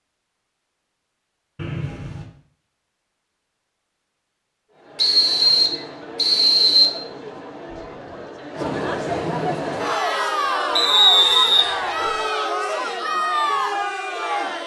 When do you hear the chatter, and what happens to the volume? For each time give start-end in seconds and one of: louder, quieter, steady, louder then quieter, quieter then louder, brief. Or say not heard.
4.7-14.6 louder.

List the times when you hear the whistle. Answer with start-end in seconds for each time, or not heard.
1.6-2.2, 5.0-6.9, 10.8-12.1.